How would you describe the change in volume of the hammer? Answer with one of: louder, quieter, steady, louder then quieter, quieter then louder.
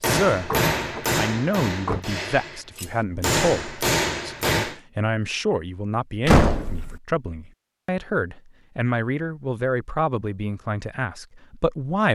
quieter then louder.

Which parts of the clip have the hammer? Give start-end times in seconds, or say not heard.
0.0-4.8.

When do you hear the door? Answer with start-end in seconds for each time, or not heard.
0.5-2.0, 6.2-7.0.